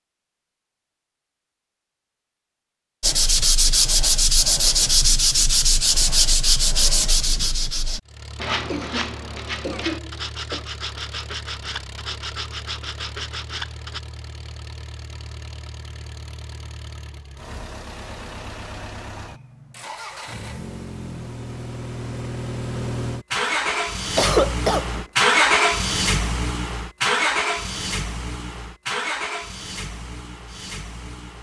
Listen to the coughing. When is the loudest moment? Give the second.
24 s.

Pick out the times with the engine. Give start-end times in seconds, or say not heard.
8.1-31.3.